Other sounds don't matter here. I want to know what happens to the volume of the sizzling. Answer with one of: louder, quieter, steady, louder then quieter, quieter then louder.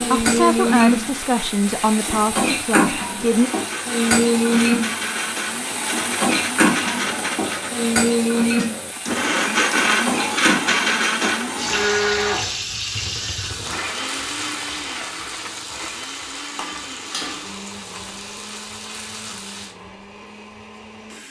quieter.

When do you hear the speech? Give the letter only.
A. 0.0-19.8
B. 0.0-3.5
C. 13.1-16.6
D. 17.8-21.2
B.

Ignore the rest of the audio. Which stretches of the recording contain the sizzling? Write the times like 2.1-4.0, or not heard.
0.0-19.8.